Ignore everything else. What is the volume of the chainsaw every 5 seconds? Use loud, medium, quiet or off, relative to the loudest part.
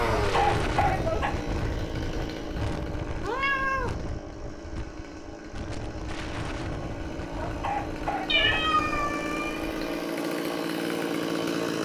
medium, medium, loud.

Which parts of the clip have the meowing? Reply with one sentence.
The meowing can be heard from 3.2 to 4.0 s and from 8.2 to 10.0 s.